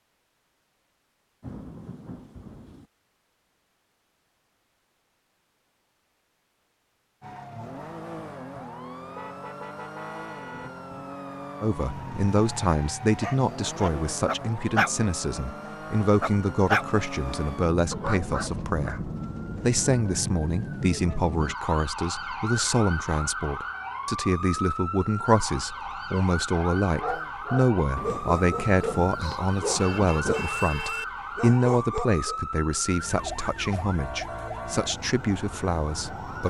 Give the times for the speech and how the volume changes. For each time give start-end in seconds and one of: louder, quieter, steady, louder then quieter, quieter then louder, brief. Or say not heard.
11.6-36.4 steady.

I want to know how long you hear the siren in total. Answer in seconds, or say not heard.
29 s.